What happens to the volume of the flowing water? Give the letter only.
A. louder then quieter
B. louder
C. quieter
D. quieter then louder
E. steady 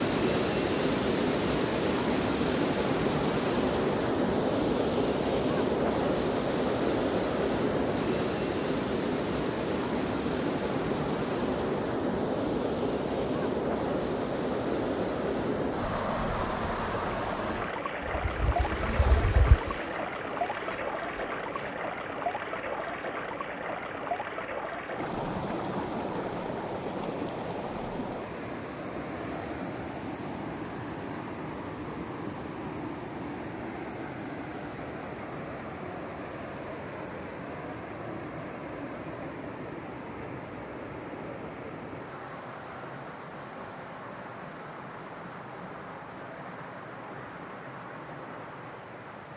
C.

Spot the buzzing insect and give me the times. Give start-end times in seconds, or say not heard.
18.0-21.8.